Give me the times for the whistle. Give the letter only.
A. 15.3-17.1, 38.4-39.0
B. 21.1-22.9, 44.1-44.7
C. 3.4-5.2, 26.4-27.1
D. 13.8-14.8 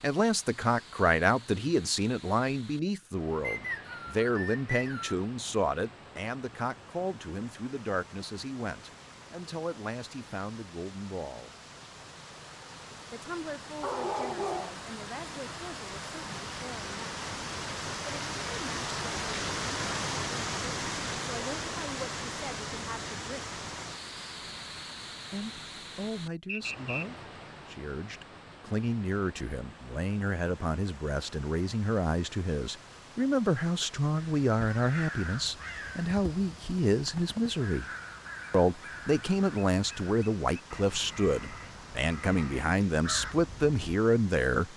C.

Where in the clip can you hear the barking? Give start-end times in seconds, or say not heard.
13.8-14.8.